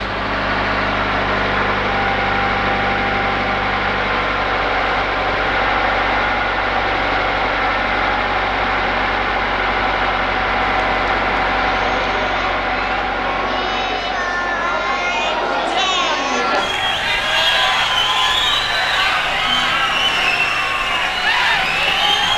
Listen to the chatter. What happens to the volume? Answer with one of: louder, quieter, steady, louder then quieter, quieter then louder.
louder.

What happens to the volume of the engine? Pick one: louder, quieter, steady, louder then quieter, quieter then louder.
quieter.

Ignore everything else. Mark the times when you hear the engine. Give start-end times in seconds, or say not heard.
0.0-22.3.